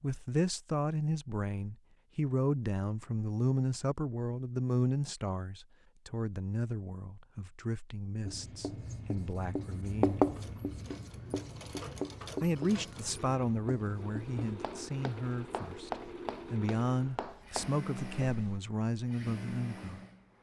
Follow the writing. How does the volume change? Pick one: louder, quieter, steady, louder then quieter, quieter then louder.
quieter.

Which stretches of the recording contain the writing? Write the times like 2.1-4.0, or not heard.
8.2-18.6.